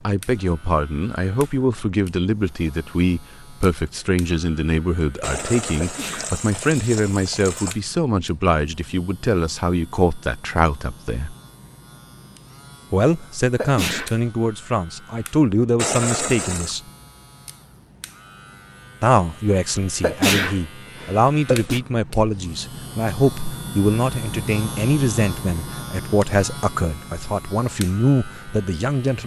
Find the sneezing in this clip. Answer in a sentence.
The sneezing can be heard from 5.8 to 6.3 s, from 13.6 to 14.2 s and from 20.0 to 21.8 s.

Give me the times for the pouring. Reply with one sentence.
The pouring can be heard from 5.2 to 7.8 s and from 15.8 to 16.8 s.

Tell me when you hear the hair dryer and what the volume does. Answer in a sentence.
The hair dryer can't be heard in this clip.